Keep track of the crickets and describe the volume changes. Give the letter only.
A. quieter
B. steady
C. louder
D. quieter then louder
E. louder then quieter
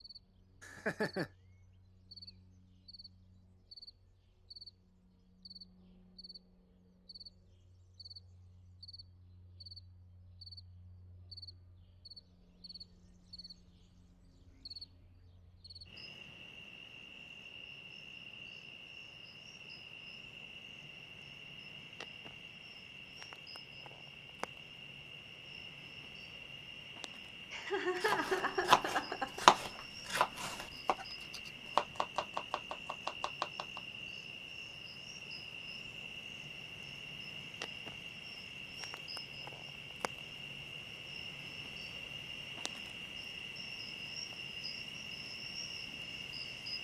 C.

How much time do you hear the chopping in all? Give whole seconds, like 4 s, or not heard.
6 s.